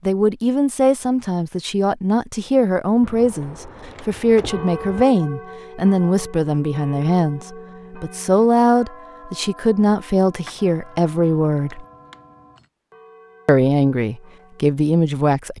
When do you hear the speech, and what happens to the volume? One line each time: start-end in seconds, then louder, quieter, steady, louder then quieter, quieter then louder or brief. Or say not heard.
0.1-11.8 steady
13.4-15.5 brief.